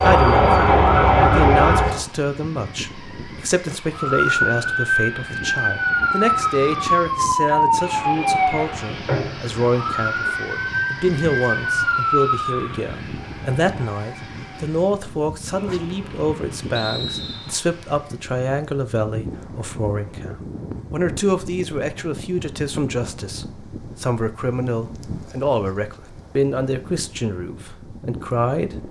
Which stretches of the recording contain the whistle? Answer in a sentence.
You can hear the whistle from 16.7 to 17.6 s.